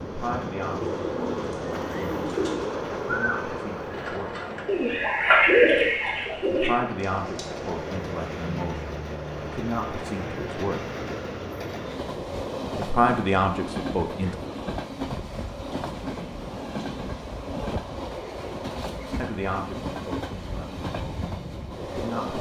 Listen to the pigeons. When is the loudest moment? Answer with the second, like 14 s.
5 s.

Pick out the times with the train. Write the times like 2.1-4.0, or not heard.
0.0-22.3.